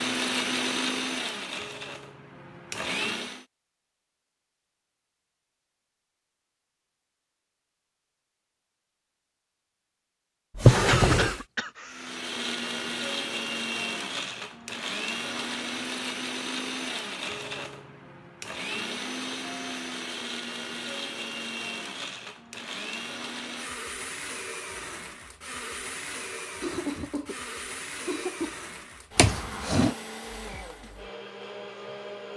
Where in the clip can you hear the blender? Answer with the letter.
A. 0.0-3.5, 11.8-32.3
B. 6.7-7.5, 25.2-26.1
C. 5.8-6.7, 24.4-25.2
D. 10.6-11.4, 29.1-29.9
A.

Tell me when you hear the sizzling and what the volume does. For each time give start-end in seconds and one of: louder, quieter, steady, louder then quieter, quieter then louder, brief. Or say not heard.
not heard.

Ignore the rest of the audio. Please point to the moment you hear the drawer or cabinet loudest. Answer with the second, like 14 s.
11 s.